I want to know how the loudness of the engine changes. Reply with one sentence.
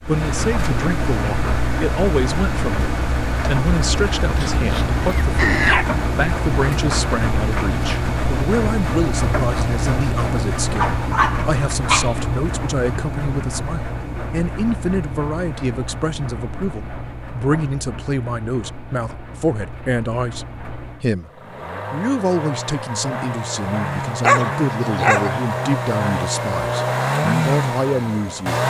The loudness of the engine goes down, then up.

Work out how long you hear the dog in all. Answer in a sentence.
The dog can be heard for 4 seconds in total.